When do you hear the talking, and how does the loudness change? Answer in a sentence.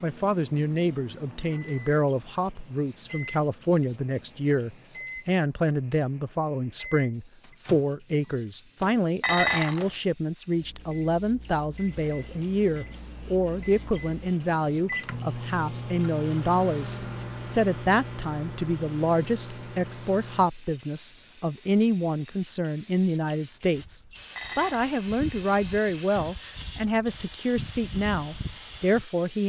You can hear the talking from 0.0 to 29.4 s, at a steady volume.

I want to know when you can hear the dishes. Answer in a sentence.
The dishes can be heard from 9.2 to 9.9 s and from 24.4 to 24.9 s.